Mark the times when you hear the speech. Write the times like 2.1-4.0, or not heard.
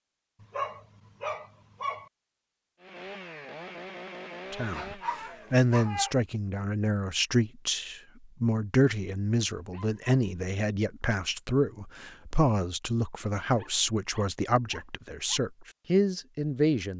4.5-16.9.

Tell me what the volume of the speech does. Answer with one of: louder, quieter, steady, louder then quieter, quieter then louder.
steady.